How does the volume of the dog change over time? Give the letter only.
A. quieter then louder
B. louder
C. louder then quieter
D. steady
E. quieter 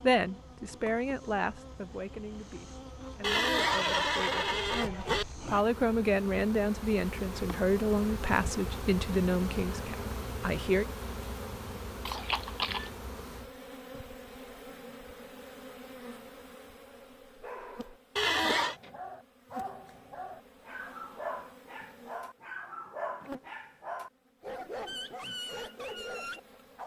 B.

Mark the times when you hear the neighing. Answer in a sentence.
You can hear the neighing from 3.2 to 5.2 s, from 12.1 to 12.9 s and from 18.1 to 18.8 s.